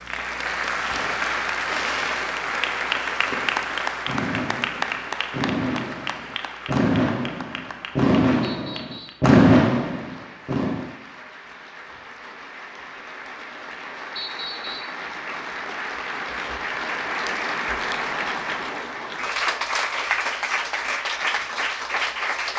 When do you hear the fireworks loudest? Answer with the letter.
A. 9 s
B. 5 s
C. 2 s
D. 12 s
A.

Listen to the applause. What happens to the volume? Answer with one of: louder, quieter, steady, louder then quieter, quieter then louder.
quieter then louder.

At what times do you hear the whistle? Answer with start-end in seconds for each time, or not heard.
8.4-9.2, 14.2-15.0.